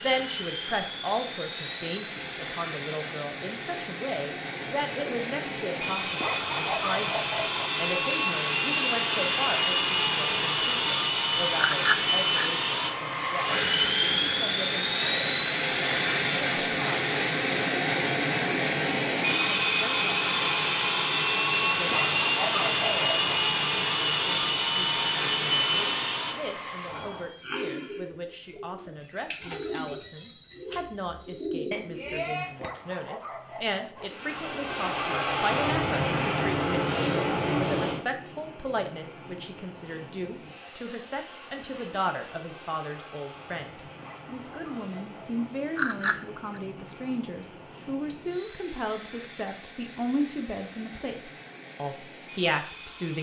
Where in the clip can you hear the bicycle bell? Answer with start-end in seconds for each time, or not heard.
11.6-12.5, 31.7-32.7, 45.8-46.6.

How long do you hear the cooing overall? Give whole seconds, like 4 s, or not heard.
5 s.